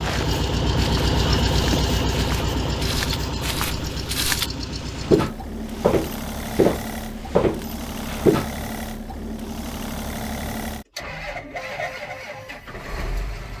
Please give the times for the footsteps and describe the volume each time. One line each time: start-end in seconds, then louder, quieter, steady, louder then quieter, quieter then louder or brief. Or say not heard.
0.0-8.5 louder.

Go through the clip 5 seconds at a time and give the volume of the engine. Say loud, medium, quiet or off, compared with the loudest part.
loud, medium, medium.